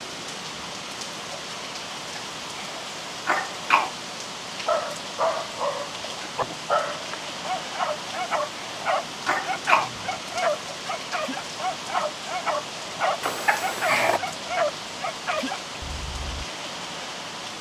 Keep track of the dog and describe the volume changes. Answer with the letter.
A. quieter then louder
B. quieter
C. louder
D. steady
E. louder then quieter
D.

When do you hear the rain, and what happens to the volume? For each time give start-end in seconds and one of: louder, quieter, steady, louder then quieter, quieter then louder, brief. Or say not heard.
0.0-17.5 steady.